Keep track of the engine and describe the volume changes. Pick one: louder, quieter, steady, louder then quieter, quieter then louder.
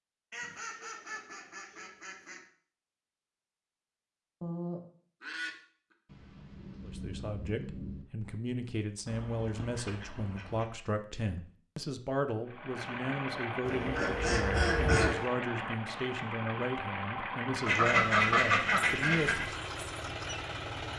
steady.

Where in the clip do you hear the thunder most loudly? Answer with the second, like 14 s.
8 s.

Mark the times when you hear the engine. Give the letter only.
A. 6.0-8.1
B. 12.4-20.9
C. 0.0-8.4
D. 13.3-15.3
B.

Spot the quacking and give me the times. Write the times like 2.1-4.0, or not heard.
0.3-2.4, 4.4-5.5, 9.1-10.7, 13.7-15.2, 17.6-19.4.